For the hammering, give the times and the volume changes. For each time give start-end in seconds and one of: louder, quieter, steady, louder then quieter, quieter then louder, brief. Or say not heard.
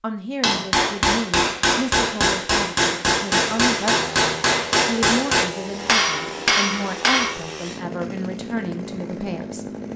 0.4-7.3 steady.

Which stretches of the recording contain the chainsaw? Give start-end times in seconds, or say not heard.
3.4-9.9.